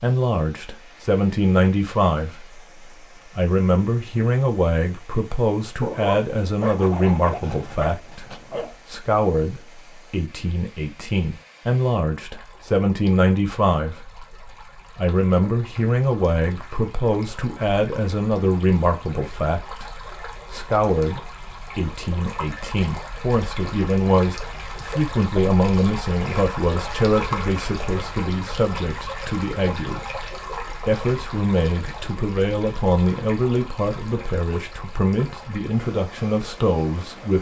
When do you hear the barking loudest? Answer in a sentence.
The loudest moment of the barking is at 6 seconds.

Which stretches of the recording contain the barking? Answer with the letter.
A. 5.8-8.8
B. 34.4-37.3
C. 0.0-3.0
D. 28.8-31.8
A.